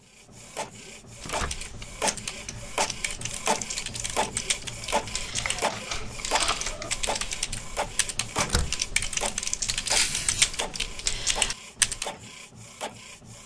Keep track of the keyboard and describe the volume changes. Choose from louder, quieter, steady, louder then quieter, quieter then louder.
louder.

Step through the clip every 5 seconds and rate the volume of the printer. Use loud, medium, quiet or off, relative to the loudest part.
loud, loud, medium.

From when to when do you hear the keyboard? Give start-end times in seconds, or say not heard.
1.3-12.1.